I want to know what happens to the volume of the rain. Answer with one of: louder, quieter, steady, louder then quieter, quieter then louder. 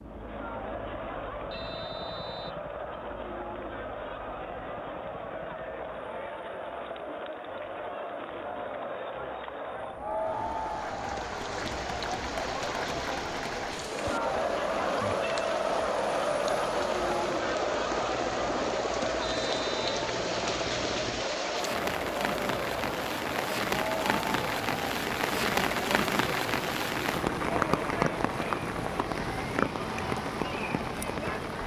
louder.